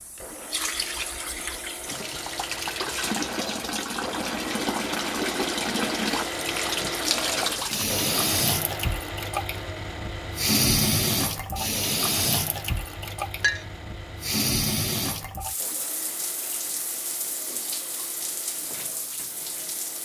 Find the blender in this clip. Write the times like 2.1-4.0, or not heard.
0.0-19.9.